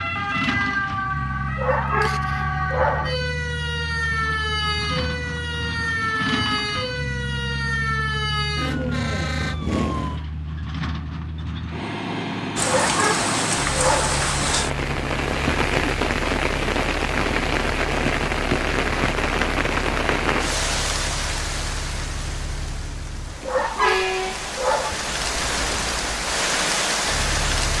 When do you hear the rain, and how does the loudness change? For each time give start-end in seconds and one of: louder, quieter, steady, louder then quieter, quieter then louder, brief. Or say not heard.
12.6-27.7 quieter then louder.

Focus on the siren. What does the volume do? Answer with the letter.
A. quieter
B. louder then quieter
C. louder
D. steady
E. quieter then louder
D.